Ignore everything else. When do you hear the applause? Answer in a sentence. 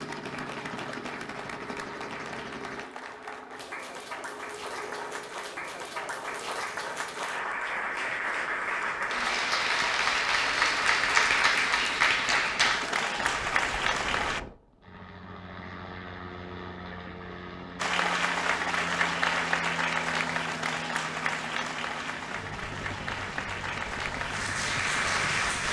The applause can be heard from 0.0 to 14.4 s and from 17.8 to 25.6 s.